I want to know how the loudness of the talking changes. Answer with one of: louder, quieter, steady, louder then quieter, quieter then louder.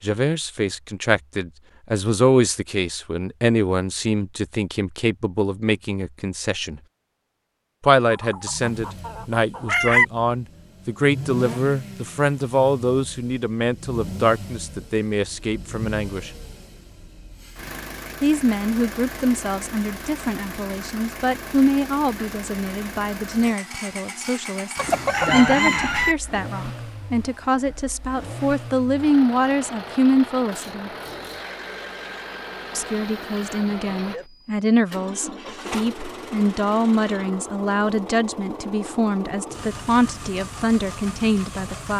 steady.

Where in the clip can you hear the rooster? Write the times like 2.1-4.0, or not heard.
8.1-10.1, 24.8-26.1.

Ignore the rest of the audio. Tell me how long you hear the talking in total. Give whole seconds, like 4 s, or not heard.
37 s.